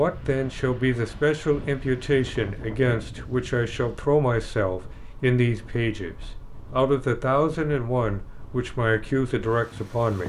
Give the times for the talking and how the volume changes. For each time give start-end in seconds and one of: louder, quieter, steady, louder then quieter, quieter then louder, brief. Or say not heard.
0.0-10.2 steady.